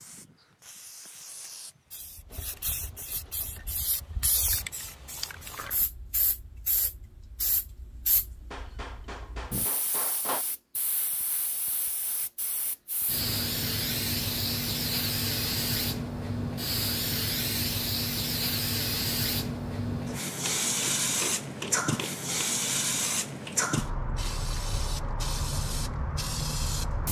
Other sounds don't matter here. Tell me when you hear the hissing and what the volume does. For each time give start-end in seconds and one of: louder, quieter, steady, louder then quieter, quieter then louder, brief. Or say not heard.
0.0-27.0 louder.